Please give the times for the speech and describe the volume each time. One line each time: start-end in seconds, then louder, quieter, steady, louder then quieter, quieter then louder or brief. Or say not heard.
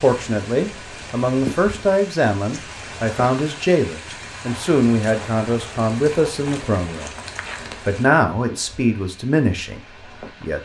0.0-7.1 steady
7.8-10.6 brief.